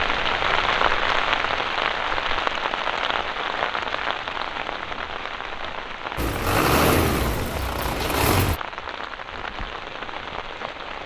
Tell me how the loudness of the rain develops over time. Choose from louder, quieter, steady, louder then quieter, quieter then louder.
quieter.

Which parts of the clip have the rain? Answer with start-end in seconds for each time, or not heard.
0.0-11.0.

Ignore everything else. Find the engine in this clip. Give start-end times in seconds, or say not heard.
6.2-8.6.